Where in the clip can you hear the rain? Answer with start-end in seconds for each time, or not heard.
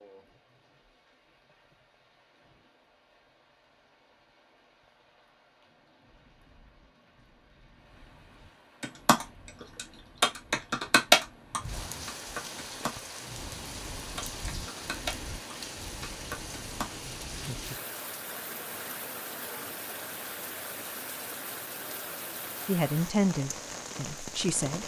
0.0-24.8.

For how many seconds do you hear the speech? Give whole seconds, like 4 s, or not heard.
2 s.